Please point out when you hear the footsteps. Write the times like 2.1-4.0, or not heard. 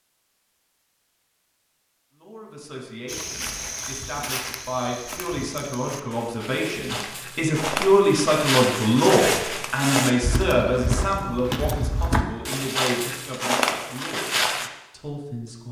3.0-14.7.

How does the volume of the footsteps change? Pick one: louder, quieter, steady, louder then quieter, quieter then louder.
louder.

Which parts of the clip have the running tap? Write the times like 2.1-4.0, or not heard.
not heard.